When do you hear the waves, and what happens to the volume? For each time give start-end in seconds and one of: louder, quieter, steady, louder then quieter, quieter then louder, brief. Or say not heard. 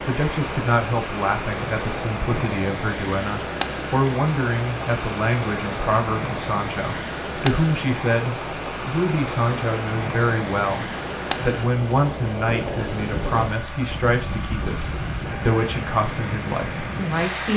0.0-17.5 steady.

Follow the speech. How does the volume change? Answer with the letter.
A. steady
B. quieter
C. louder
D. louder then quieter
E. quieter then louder
A.